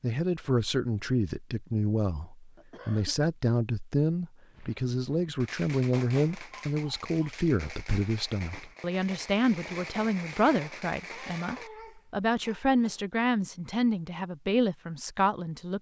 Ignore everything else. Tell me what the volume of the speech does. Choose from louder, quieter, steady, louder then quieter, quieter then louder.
steady.